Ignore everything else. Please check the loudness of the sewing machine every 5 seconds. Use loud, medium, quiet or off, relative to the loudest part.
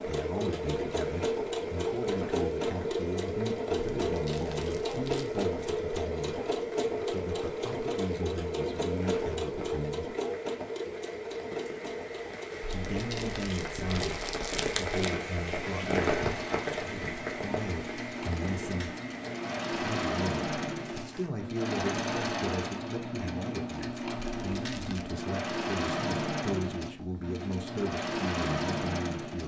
loud, loud, medium, medium, loud, loud.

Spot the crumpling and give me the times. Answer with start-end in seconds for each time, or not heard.
4.0-5.3, 12.8-15.2, 24.3-25.1.